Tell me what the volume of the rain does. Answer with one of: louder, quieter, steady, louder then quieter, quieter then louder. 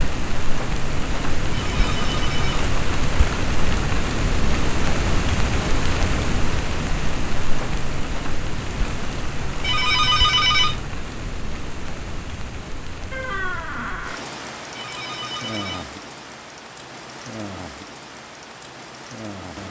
quieter.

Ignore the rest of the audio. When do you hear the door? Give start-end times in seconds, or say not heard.
13.1-14.2.